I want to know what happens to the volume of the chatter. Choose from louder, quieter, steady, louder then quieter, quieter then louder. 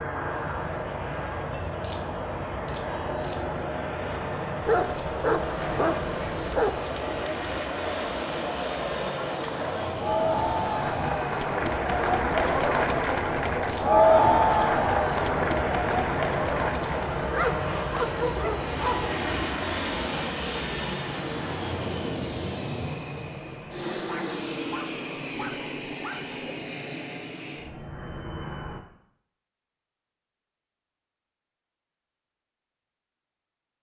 louder.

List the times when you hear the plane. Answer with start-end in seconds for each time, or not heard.
0.0-28.8.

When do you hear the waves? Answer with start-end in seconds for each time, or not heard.
not heard.